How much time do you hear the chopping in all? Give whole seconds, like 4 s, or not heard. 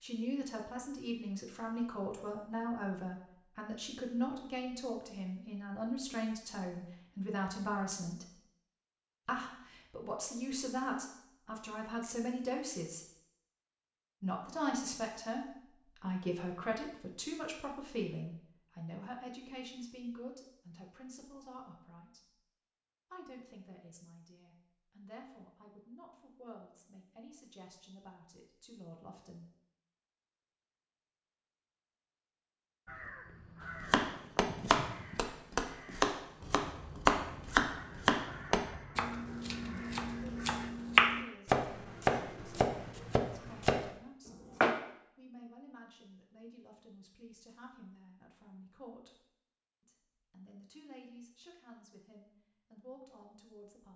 11 s.